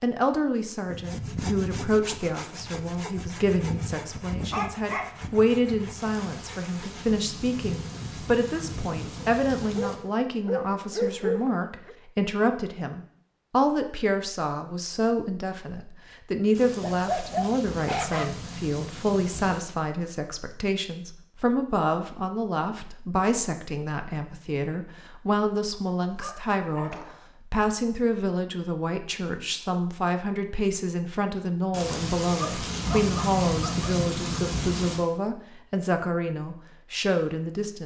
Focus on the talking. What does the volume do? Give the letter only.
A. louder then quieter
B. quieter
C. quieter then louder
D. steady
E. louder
D.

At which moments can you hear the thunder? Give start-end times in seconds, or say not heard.
6.0-9.9, 16.6-19.6, 31.7-35.0.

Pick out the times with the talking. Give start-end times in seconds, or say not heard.
0.0-37.8.